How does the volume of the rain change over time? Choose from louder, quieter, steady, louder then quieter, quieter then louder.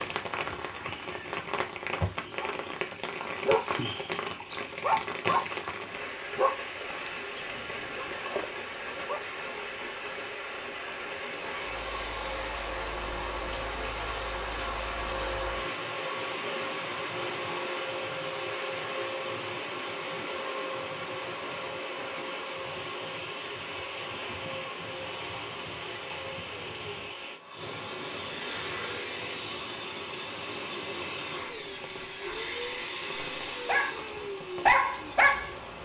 quieter.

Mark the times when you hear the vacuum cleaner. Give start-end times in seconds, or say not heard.
11.4-35.7.